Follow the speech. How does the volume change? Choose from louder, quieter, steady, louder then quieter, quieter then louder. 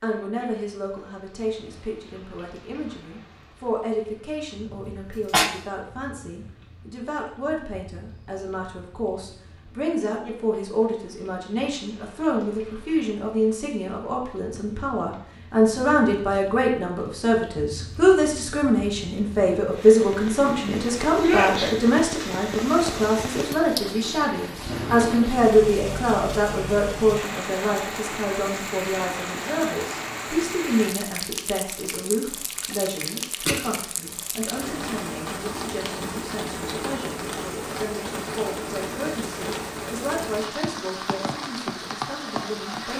louder then quieter.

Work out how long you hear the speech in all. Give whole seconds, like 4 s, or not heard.
43 s.